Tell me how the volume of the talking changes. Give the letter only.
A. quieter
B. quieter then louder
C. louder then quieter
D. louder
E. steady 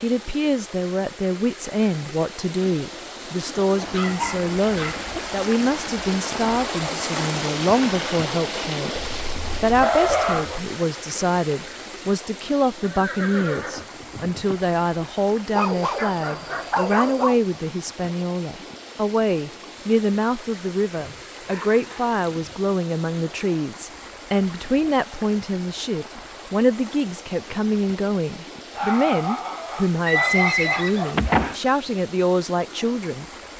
E.